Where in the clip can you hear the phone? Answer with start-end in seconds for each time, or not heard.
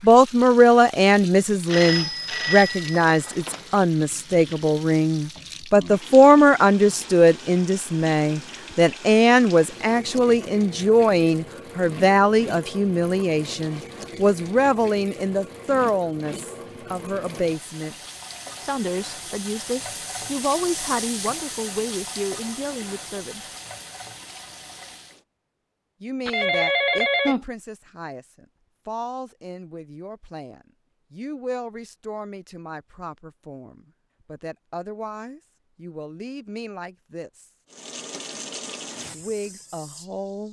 1.6-3.8, 26.2-27.4.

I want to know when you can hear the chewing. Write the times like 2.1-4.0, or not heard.
not heard.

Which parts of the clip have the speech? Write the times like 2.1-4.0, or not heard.
0.0-17.9, 18.6-23.4, 26.0-37.5, 39.1-40.4.